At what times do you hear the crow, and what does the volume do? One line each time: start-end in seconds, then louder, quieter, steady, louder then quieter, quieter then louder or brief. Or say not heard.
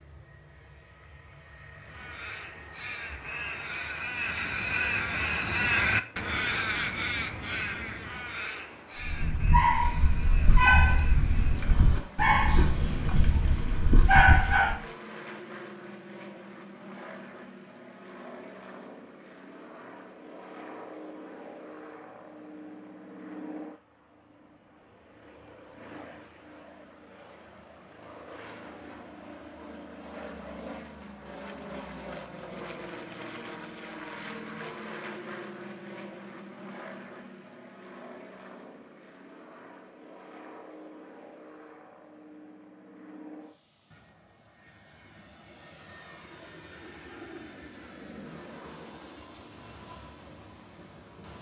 1.8-11.8 louder then quieter.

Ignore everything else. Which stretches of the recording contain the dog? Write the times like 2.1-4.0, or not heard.
8.9-14.8.